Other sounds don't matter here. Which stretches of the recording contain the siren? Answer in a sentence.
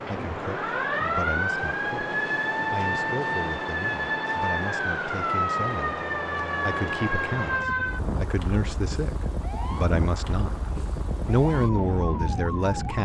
You can hear the siren from 0.0 to 13.0 s.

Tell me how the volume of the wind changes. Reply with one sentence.
The loudness of the wind stays about the same.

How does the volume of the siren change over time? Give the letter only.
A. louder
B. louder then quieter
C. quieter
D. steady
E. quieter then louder
C.